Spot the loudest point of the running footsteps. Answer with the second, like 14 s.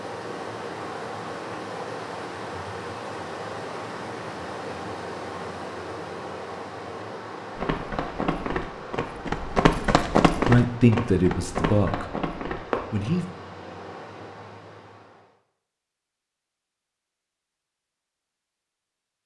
10 s.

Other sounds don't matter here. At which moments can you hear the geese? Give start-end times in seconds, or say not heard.
not heard.